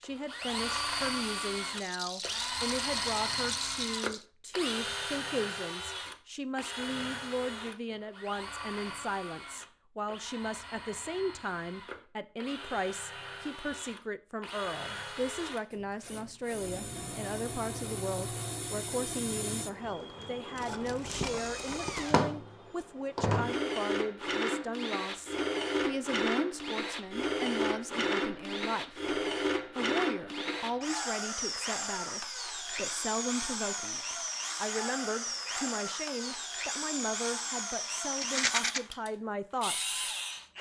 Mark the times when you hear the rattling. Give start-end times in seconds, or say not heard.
1.8-4.2, 20.6-22.1, 38.2-38.8.